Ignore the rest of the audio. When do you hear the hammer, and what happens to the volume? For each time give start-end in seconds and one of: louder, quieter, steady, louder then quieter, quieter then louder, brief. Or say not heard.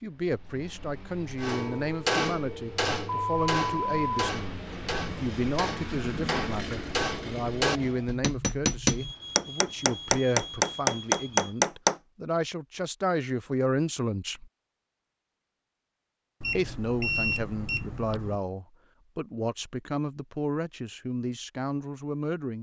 1.4-11.9 quieter then louder.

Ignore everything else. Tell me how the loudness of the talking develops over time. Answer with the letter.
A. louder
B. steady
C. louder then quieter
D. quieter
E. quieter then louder
B.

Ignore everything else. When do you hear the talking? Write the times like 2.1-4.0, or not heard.
0.0-14.4, 16.6-22.5.